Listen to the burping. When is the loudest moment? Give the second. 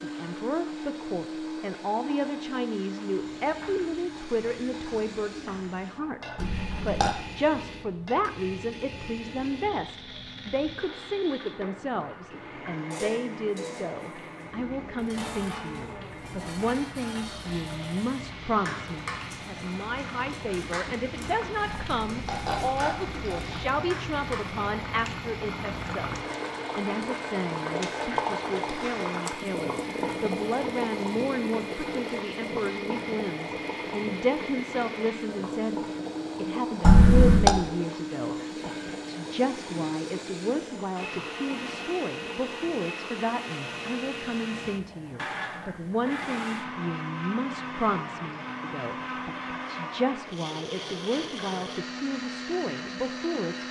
37 s.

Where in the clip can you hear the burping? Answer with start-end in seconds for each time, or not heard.
6.3-7.2, 21.6-23.6, 36.8-37.5.